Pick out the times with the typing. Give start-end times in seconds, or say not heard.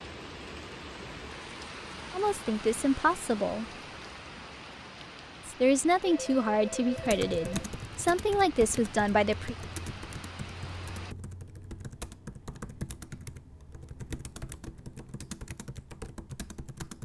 7.0-17.0.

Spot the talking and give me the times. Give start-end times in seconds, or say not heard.
2.1-3.6, 5.5-9.6.